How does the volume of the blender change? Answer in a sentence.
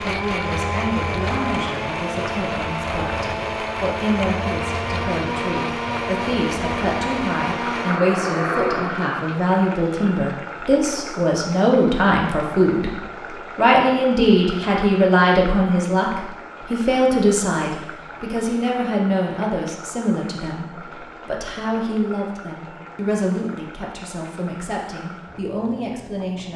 The volume of the blender stays about the same.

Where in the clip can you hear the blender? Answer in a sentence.
The blender can be heard from 0.0 to 9.2 s.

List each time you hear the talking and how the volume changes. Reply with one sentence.
The talking can be heard from 0.0 to 12.9 s, getting louder; and from 13.6 to 26.5 s, getting quieter.